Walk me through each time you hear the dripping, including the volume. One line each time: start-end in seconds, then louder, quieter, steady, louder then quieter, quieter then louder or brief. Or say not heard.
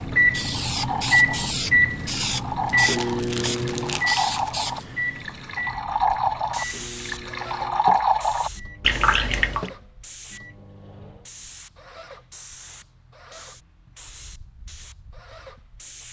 0.0-9.7 louder.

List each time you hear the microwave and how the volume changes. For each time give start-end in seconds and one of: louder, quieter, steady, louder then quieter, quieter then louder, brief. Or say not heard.
0.0-11.3 quieter.